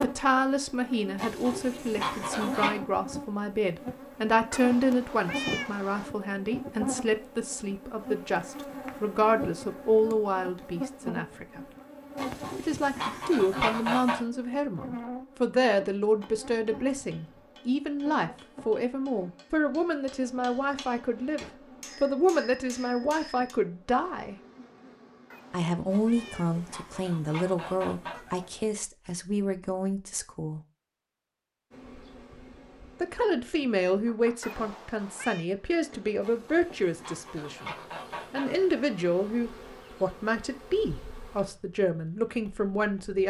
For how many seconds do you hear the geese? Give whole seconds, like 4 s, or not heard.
9 s.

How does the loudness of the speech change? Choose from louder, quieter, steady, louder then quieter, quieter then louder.
steady.